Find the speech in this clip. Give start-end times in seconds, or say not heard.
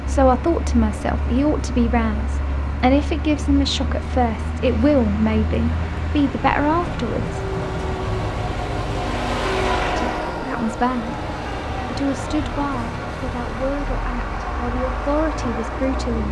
0.0-7.4, 9.8-11.2, 11.8-16.2.